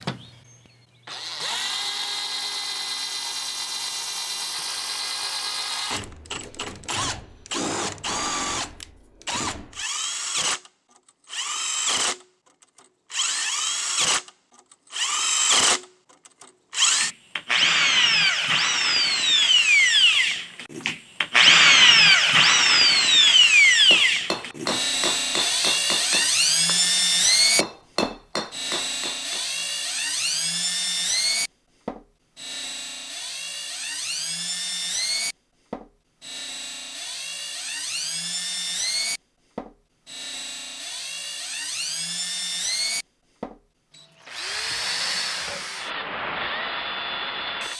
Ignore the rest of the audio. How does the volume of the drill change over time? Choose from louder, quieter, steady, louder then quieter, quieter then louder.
louder then quieter.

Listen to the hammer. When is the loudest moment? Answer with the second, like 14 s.
26 s.